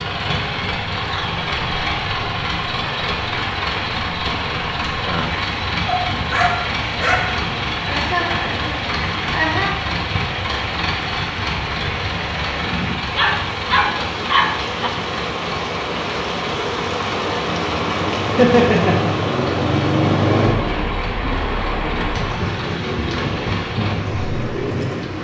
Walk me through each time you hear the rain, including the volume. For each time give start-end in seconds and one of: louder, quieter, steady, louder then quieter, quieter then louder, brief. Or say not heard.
0.0-25.1 louder.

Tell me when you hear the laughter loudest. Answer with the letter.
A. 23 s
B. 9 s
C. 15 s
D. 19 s
D.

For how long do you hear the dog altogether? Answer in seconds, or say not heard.
3 s.